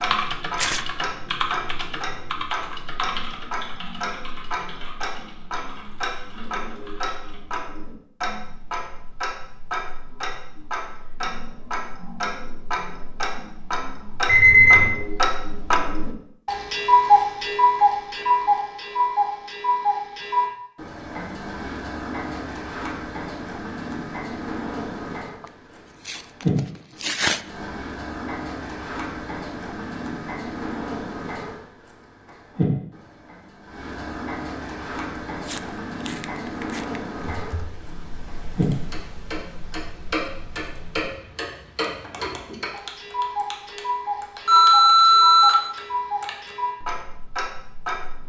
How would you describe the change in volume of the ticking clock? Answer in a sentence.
The loudness of the ticking clock goes up, then down.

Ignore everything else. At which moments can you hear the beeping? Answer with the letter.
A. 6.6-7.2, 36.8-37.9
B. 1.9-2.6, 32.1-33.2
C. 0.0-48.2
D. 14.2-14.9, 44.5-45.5
D.